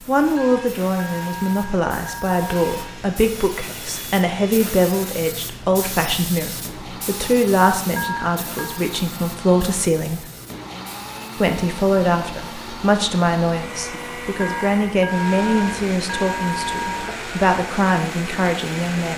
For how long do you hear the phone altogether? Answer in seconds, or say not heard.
6 s.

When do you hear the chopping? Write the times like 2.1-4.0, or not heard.
not heard.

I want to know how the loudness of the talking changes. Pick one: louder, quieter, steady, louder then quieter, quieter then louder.
steady.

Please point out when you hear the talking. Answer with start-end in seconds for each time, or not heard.
0.1-10.2, 11.4-19.1.